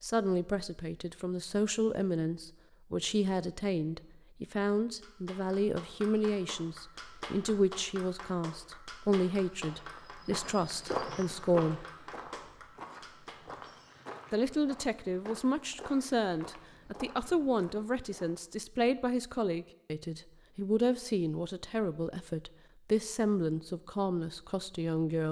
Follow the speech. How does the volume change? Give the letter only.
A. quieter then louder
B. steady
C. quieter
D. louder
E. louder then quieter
B.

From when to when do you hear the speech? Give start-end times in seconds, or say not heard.
0.0-11.8, 14.3-25.2.